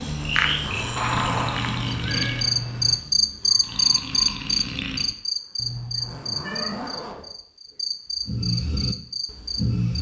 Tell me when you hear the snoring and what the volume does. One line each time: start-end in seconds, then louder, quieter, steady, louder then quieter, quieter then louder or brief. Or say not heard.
0.0-6.3 quieter then louder
8.2-9.9 brief.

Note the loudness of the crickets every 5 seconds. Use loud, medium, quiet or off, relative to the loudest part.
loud, medium.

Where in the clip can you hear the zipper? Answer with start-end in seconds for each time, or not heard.
0.5-1.5, 6.0-7.2.